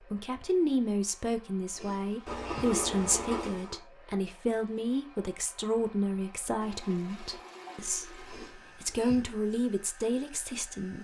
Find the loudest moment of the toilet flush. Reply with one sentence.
The loudest moment of the toilet flush is at 3 seconds.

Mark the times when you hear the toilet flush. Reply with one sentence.
The toilet flush can be heard from 2.2 to 3.8 s and from 6.6 to 8.6 s.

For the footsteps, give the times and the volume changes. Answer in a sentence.
You can't hear the footsteps here.